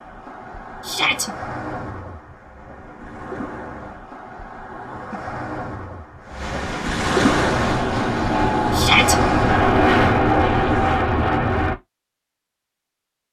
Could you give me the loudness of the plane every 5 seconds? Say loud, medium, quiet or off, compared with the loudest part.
off, loud, loud.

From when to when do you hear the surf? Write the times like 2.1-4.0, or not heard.
0.0-11.1.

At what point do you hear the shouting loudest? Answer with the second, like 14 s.
9 s.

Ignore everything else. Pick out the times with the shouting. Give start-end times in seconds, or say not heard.
0.8-1.3, 8.7-9.2.